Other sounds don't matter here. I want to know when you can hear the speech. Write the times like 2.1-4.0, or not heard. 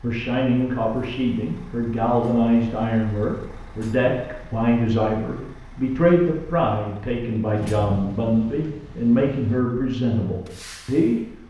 0.0-11.2.